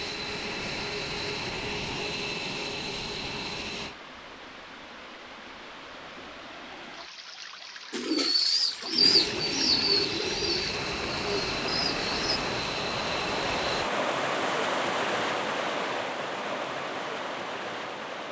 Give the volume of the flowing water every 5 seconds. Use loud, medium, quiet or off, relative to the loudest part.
quiet, medium, loud, loud.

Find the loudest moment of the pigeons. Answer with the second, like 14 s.
9 s.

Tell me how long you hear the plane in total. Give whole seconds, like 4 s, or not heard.
9 s.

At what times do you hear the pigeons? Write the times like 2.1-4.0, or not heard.
7.9-12.4.